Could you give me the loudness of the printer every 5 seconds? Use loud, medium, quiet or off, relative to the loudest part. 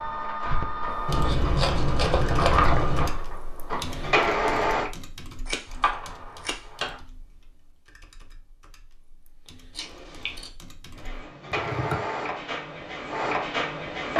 loud, off, loud.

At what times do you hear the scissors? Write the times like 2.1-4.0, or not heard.
1.1-3.1, 5.5-7.0, 9.7-10.5.